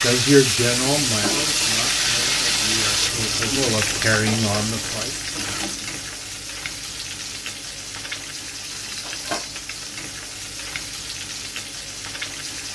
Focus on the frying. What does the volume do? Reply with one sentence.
The volume of the frying goes down.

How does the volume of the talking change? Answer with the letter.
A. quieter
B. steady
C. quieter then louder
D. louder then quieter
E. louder
C.